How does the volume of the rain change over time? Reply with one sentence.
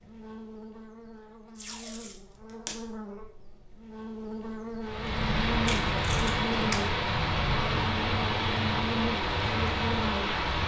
The volume of the rain stays about the same.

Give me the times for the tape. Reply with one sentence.
You can hear the tape from 1.6 to 2.8 s and from 5.7 to 6.8 s.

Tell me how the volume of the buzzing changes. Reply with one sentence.
The volume of the buzzing goes up.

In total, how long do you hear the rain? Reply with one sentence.
The rain can be heard for 6 seconds in total.